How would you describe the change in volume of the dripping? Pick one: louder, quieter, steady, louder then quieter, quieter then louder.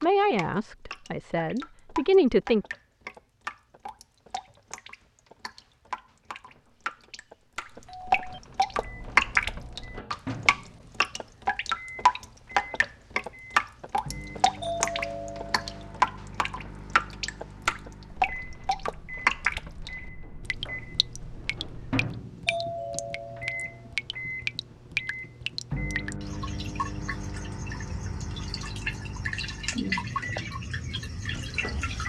louder then quieter.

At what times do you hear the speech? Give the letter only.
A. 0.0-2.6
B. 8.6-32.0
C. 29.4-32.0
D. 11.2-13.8
A.